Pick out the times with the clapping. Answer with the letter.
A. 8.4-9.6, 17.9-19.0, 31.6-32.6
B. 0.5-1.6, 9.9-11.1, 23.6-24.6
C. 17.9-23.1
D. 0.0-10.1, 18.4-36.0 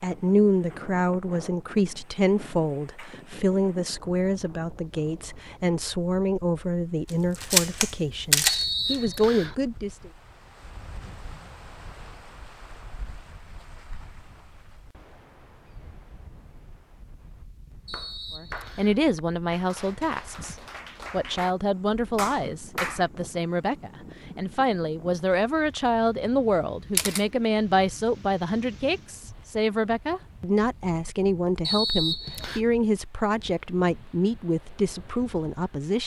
C.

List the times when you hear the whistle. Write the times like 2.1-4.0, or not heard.
8.4-9.6, 17.9-19.0, 31.6-32.6.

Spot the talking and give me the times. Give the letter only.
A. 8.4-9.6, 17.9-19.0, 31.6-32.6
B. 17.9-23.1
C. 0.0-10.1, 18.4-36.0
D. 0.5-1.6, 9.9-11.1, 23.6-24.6
C.